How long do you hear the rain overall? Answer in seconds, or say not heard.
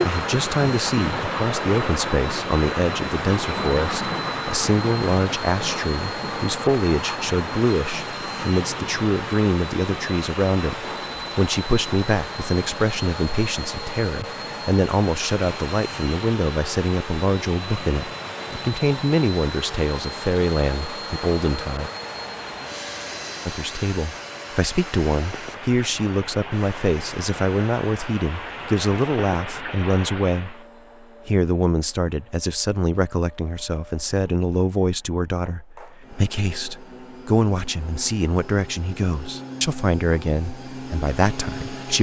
31 s.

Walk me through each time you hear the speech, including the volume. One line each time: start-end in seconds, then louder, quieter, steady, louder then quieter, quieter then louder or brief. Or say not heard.
0.0-21.9 steady
23.4-30.6 steady
31.2-41.9 steady.